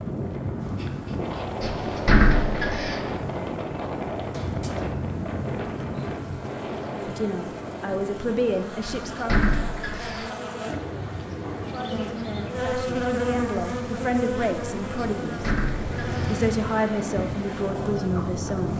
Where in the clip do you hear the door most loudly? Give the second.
2 s.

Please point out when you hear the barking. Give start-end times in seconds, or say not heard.
not heard.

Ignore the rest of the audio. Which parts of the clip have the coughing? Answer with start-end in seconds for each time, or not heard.
4.3-5.0.